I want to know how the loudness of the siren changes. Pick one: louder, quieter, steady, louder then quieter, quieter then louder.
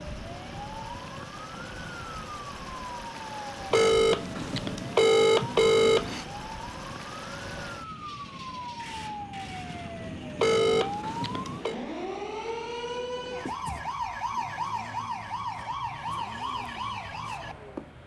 louder.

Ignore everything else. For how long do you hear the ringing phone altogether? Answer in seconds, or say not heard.
4 s.